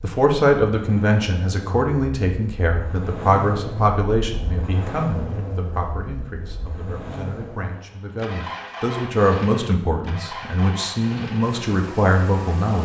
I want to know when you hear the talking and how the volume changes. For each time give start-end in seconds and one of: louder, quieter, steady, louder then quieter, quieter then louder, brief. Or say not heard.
0.0-12.7 quieter then louder.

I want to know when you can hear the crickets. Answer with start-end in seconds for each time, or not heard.
not heard.